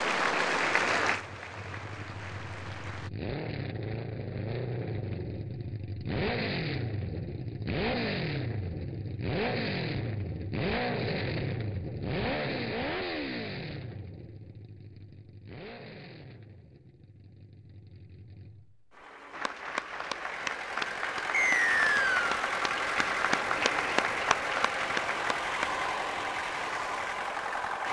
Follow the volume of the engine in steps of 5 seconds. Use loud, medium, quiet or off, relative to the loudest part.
medium, loud, loud, quiet, loud, loud.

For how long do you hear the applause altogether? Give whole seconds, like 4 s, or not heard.
10 s.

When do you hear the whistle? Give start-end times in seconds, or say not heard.
21.3-22.3.